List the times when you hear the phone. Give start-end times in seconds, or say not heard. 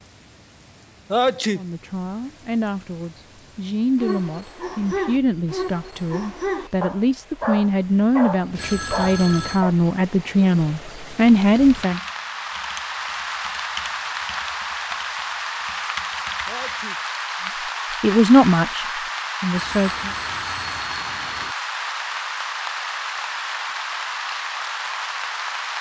8.6-9.7, 19.5-21.6.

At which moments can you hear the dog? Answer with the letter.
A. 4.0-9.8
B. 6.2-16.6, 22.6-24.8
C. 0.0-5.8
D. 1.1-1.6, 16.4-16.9
A.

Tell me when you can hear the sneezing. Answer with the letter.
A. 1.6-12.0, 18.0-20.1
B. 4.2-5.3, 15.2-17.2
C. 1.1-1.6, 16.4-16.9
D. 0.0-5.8
C.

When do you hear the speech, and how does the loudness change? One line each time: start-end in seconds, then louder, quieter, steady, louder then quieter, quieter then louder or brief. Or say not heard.
1.6-12.0 louder
18.0-20.1 brief.